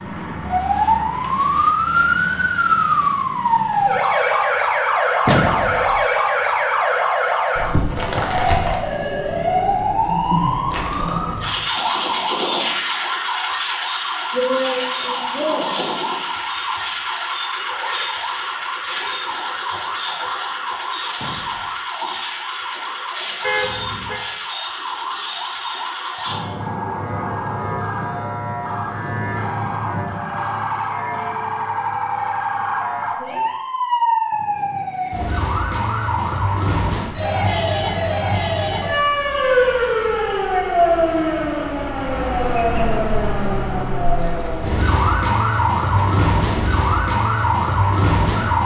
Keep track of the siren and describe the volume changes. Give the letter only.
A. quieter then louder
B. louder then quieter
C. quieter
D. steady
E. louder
A.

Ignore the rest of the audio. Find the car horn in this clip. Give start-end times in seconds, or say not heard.
23.4-24.2.